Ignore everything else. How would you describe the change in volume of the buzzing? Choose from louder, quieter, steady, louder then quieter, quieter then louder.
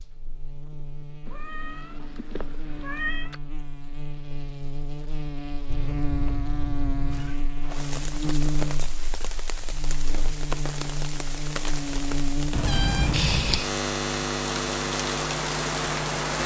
louder.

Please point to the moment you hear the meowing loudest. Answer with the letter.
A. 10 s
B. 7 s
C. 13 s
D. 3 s
C.